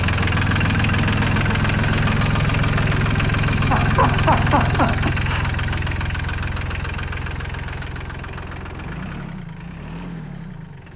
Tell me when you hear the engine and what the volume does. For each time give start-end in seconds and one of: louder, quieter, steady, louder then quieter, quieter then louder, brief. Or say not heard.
0.0-10.9 quieter.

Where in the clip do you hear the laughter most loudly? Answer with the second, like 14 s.
4 s.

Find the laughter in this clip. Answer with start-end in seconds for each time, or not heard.
3.7-5.5.